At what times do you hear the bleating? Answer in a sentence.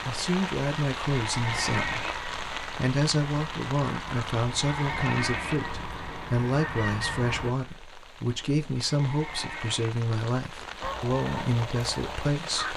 The bleating can be heard from 1.2 to 2.1 s, from 4.5 to 5.6 s and from 8.9 to 9.9 s.